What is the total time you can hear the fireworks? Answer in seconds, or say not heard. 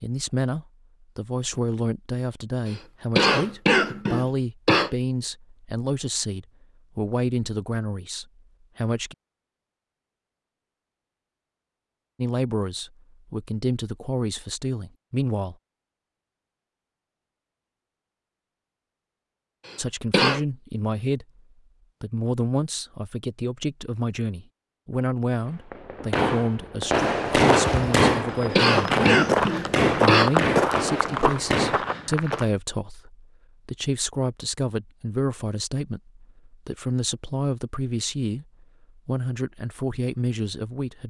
6 s.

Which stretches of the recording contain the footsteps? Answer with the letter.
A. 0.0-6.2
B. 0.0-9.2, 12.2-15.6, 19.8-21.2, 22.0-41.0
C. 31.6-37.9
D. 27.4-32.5
D.